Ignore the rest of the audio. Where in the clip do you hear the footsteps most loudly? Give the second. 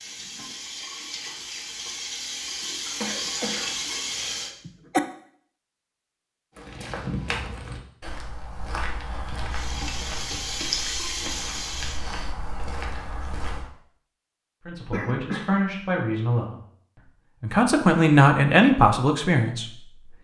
7 s.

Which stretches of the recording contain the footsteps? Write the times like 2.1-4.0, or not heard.
6.5-13.7.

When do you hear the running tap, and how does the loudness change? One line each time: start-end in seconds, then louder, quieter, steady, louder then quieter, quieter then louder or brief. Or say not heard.
0.0-4.5 louder
9.5-12.1 brief.